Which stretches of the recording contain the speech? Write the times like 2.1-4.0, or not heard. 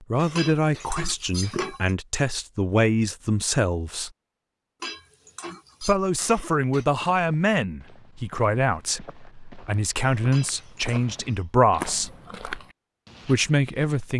0.1-4.1, 5.8-12.1, 13.2-14.1.